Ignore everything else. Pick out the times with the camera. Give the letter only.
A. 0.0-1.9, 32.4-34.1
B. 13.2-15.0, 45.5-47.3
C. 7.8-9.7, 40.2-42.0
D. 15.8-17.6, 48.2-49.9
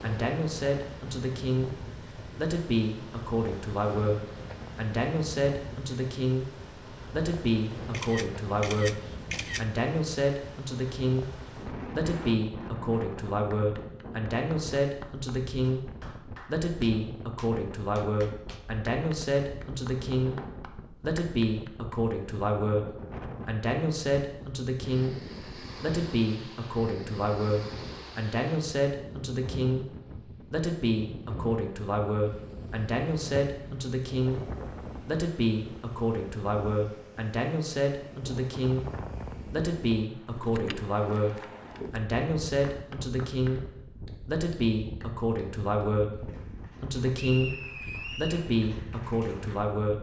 C.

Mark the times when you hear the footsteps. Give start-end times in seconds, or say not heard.
not heard.